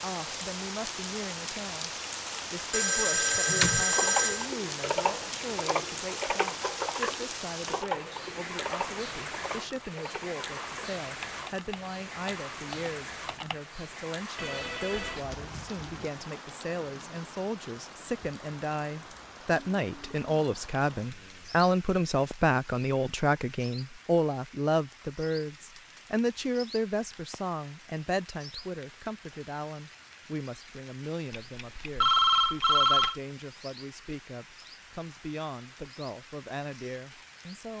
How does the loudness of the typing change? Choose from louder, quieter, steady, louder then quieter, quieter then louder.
quieter.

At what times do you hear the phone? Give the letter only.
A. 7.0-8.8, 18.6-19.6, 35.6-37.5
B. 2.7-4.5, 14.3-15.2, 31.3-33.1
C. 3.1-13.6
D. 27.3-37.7
B.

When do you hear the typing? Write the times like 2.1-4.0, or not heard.
3.1-13.6.